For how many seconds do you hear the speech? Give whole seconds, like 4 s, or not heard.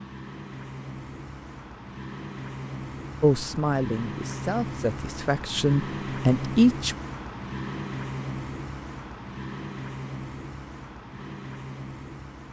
4 s.